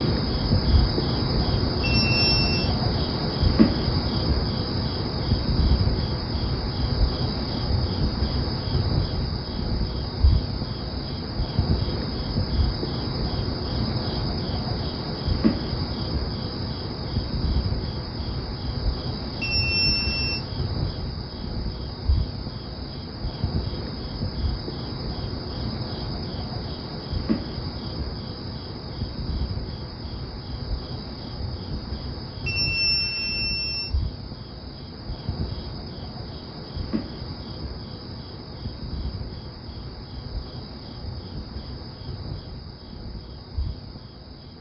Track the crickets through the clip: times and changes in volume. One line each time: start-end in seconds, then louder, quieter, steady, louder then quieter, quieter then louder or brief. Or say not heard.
0.0-44.5 quieter.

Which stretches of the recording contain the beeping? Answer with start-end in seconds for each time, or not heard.
1.8-2.7, 19.4-20.4, 32.5-33.9.